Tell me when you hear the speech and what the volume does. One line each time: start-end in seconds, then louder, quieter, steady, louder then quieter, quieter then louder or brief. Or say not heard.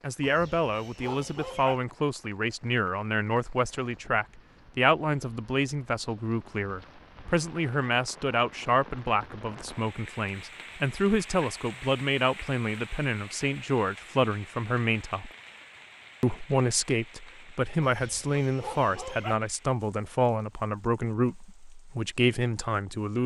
0.0-15.3 steady
16.2-23.2 steady.